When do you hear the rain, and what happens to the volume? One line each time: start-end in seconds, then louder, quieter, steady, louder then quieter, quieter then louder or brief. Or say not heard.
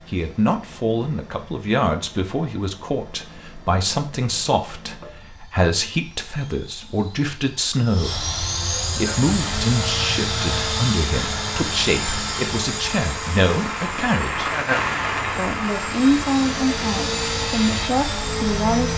8.9-18.9 louder then quieter.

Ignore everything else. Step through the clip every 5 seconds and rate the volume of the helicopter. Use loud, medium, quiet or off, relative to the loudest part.
quiet, loud, loud, loud.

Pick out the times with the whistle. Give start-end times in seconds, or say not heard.
not heard.